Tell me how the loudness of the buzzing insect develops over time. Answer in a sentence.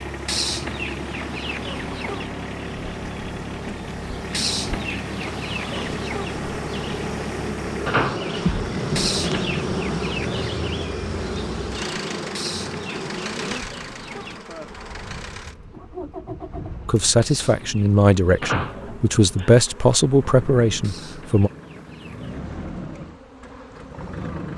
The loudness of the buzzing insect goes up, then down.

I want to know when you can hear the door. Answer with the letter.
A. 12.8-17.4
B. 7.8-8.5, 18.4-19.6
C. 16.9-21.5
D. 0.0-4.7
B.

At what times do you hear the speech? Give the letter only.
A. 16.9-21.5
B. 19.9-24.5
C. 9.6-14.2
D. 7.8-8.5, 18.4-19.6
A.